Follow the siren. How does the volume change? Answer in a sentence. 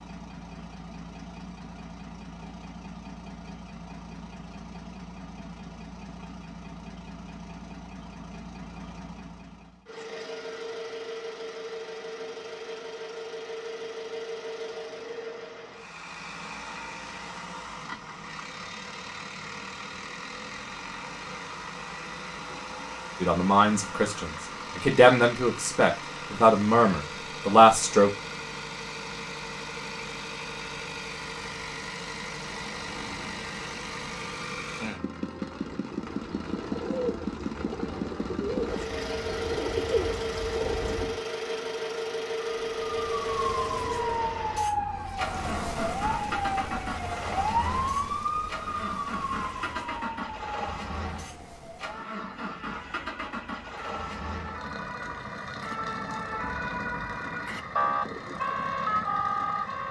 The volume of the siren goes down, then up.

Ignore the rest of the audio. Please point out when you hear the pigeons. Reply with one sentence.
The pigeons can be heard from 35.7 to 41.2 s.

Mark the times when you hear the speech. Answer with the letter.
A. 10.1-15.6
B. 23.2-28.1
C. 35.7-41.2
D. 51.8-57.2
B.